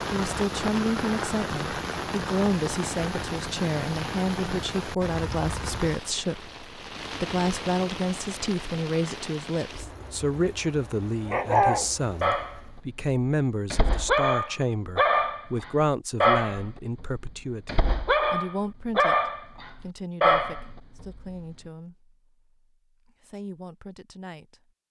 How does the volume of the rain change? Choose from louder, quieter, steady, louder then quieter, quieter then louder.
quieter.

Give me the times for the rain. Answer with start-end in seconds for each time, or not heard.
0.0-12.8.